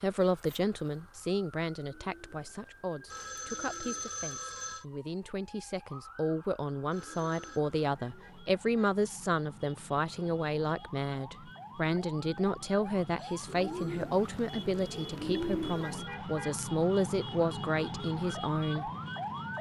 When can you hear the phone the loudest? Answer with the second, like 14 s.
4 s.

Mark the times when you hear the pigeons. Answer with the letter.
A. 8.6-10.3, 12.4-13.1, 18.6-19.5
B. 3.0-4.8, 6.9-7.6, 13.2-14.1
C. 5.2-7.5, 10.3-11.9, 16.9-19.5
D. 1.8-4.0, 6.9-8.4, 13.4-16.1
D.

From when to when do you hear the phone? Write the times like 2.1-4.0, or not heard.
3.0-4.8, 6.9-7.6, 13.2-14.1.